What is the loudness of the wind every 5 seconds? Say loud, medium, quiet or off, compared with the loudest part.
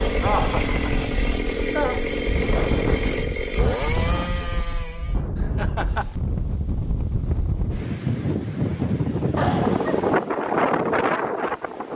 medium, loud, loud.